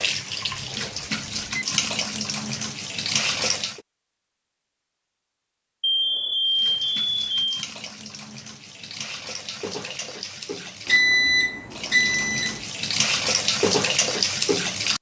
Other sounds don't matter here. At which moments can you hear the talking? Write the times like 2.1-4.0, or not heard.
not heard.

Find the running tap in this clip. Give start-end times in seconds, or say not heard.
0.0-3.8, 6.5-14.9.